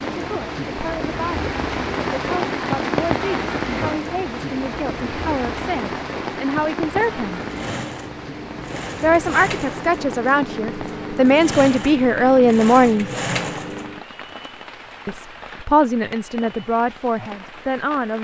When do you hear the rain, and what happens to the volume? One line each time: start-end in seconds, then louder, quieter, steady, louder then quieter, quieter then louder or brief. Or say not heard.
0.0-18.1 quieter.